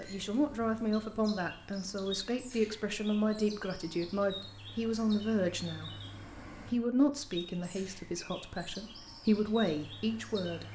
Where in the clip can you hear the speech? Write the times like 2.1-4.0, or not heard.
0.0-6.0, 6.7-10.6.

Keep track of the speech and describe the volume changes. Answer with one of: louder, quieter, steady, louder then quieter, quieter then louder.
steady.